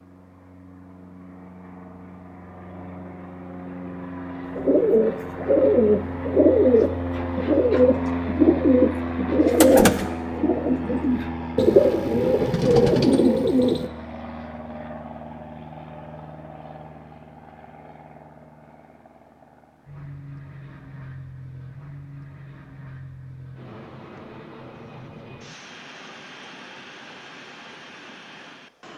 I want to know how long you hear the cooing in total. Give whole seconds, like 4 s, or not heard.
9 s.